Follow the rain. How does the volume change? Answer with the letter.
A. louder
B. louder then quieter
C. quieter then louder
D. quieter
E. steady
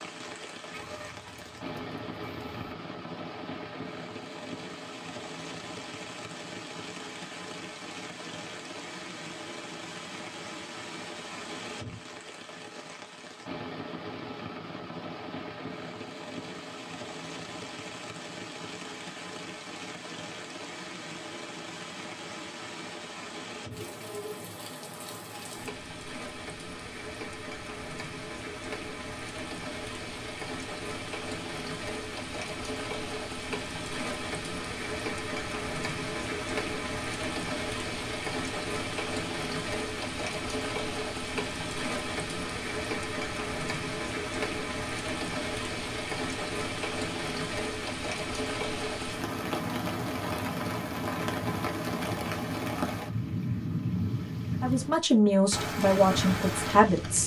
A.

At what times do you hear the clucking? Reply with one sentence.
The clucking can be heard from 0.7 to 2.5 s.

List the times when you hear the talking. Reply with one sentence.
You can hear the talking from 54.6 to 57.2 s.